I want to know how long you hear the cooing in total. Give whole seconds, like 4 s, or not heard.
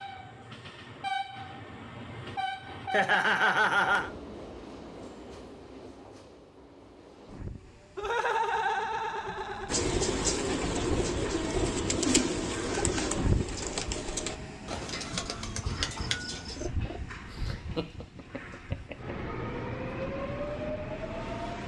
7 s.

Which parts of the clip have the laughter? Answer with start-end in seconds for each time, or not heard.
2.9-4.1, 8.0-9.8, 17.3-19.1.